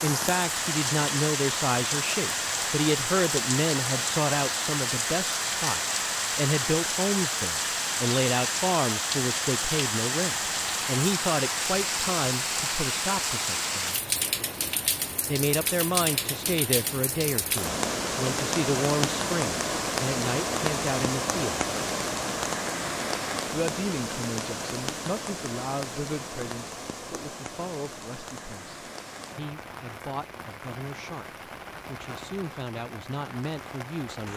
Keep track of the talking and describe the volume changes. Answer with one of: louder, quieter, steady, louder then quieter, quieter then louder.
quieter.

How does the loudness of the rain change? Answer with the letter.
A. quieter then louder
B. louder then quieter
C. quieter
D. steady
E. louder
C.